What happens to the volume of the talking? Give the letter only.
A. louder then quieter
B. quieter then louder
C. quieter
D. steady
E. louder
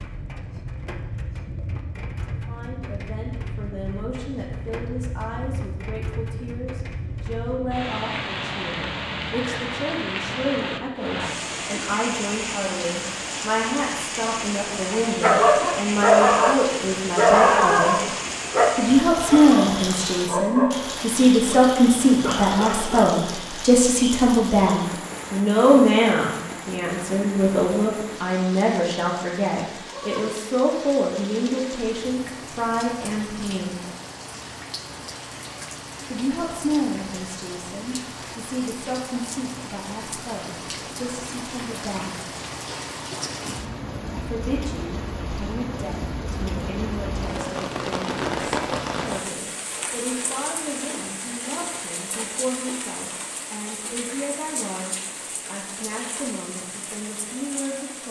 A.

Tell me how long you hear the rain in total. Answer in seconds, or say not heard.
58 s.